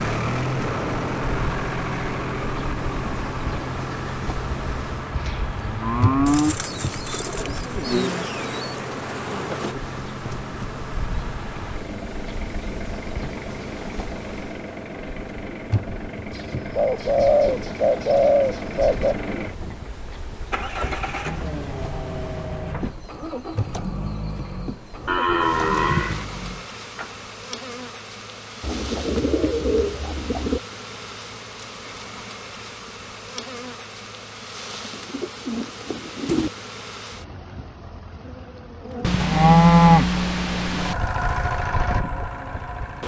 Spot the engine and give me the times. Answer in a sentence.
You can hear the engine from 0.0 to 27.2 s and from 40.7 to 43.0 s.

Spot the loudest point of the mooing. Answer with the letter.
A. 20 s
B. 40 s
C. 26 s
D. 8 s
B.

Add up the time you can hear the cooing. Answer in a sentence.
The cooing can be heard for 9 seconds in total.